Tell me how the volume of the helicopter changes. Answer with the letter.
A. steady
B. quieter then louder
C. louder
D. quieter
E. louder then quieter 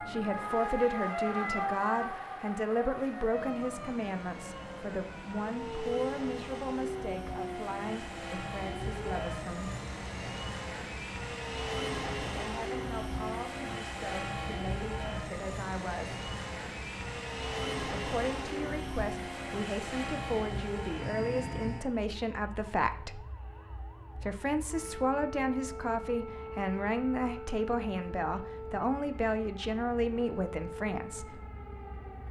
C.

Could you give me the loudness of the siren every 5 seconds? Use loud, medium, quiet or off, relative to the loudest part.
loud, loud, medium, medium, quiet, medium, medium.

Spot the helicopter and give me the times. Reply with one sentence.
The helicopter can be heard from 0.0 to 21.9 s.